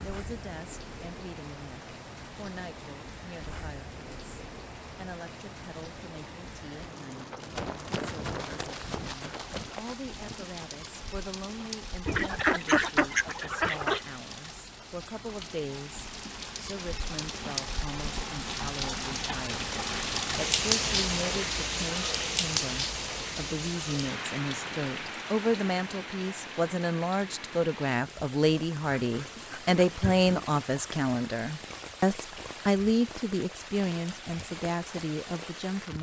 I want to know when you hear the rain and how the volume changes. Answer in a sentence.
The rain can be heard from 0.0 to 35.9 s, getting louder then quieter.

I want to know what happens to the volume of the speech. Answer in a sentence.
The volume of the speech goes up.